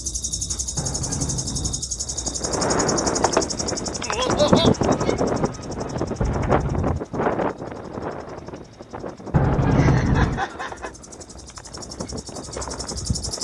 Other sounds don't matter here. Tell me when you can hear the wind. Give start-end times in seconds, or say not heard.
1.9-13.3.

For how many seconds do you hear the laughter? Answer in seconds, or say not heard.
2 s.